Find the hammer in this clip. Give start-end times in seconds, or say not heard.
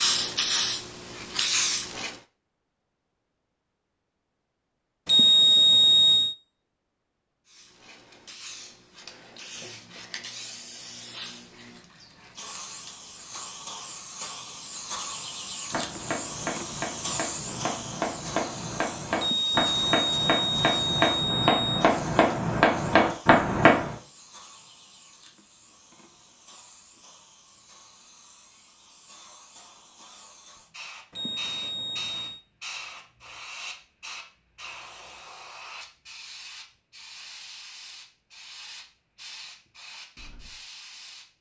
15.7-23.9.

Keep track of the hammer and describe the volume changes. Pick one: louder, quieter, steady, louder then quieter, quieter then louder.
louder.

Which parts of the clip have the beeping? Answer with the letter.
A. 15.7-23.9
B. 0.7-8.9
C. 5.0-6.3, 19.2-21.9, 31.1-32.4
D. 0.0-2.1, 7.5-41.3
C.